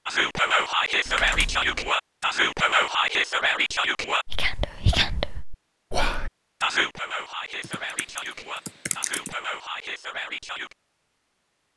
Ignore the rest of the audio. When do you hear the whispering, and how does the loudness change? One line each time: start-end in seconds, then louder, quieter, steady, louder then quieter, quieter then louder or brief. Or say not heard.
0.1-10.8 quieter.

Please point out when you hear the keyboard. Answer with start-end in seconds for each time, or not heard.
1.1-1.9, 7.6-9.3.